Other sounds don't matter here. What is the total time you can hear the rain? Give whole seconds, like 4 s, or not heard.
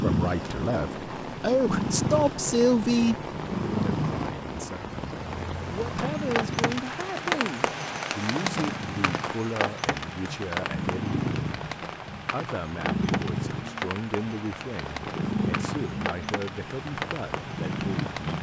18 s.